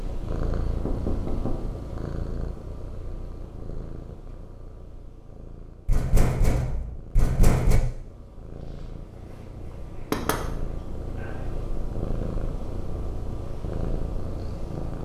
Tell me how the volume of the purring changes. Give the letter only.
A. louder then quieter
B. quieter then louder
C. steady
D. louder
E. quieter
B.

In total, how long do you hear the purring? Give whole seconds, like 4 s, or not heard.
15 s.